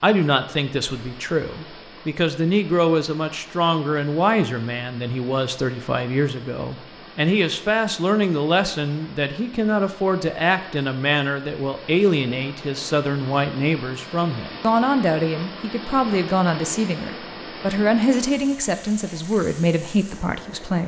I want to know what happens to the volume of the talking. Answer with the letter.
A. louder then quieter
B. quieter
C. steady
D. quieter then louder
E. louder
C.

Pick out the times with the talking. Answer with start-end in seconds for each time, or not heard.
0.0-20.8.